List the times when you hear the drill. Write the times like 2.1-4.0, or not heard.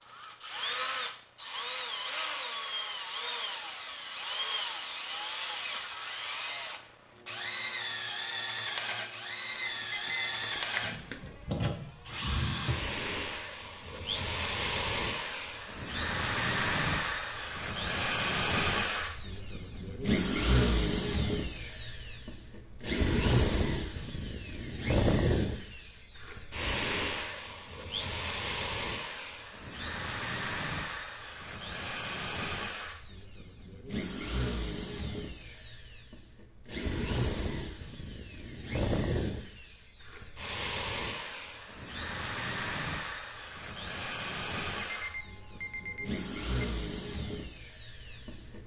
0.0-48.6.